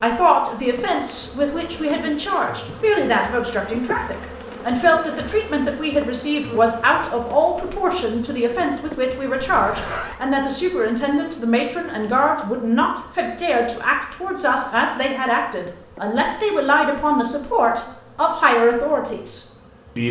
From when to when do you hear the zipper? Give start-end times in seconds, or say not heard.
9.4-10.2.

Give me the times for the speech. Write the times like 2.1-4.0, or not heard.
0.0-20.0.